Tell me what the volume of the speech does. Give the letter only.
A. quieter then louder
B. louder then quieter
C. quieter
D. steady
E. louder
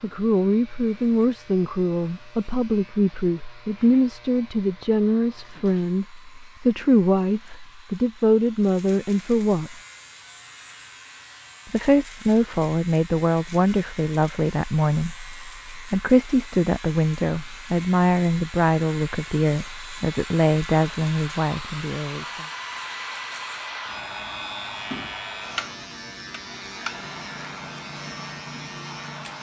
D.